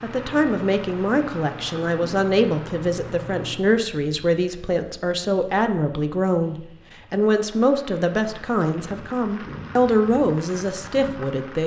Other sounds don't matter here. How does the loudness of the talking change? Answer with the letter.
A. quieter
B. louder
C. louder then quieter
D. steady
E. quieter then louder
D.